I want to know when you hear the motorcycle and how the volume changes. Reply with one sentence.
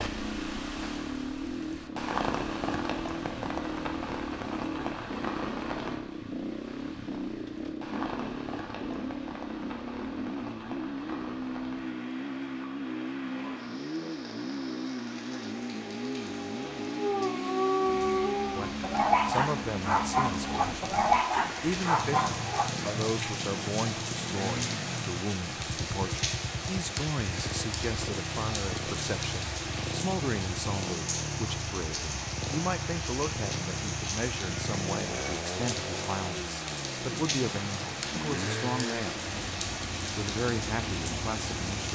The motorcycle can be heard from 0.0 to 41.9 s, at a steady volume.